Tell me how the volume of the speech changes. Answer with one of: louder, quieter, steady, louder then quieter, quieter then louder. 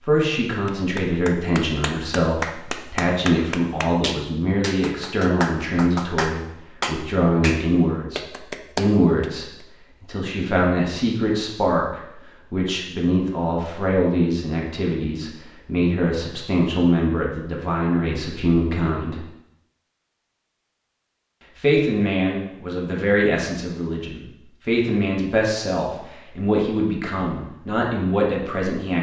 steady.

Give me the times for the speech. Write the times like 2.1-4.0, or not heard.
0.0-19.2, 21.6-28.9.